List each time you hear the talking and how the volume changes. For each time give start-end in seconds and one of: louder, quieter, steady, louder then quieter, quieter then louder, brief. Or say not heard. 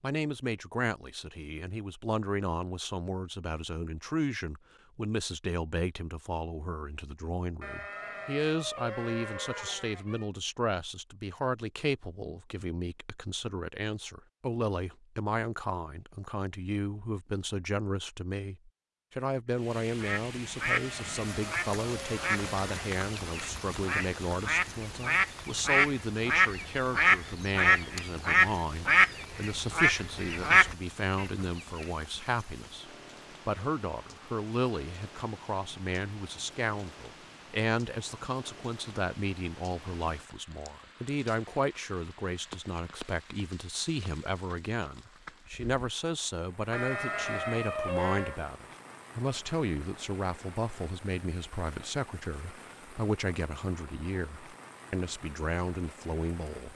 0.0-56.7 steady.